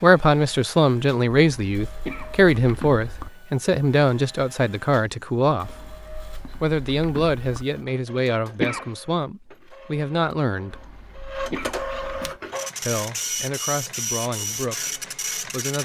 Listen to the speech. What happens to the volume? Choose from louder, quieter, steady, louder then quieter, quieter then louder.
quieter.